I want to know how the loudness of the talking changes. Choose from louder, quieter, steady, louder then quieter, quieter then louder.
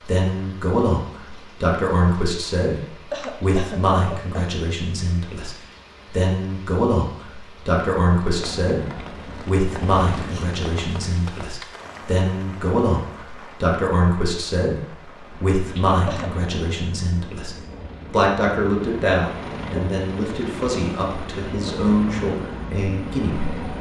steady.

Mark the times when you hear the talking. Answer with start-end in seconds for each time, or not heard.
0.0-23.6.